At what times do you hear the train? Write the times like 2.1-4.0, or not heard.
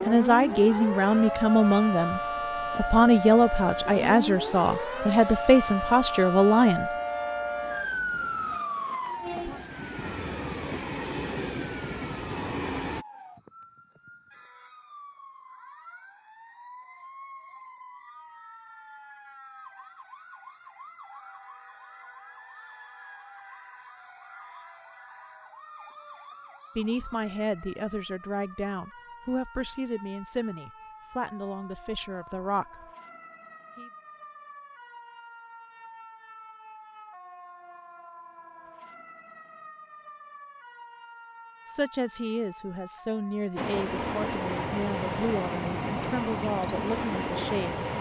0.2-13.1, 43.5-47.9.